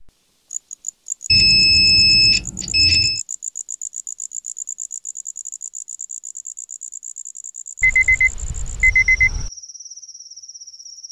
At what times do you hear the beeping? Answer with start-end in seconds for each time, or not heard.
1.3-3.2, 7.8-9.5.